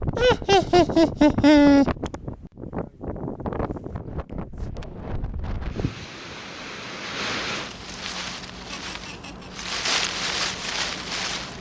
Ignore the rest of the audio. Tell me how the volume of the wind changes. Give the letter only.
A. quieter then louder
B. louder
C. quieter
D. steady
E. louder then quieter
A.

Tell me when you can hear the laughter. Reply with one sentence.
You can hear the laughter from 0.1 to 1.9 s and from 8.7 to 9.5 s.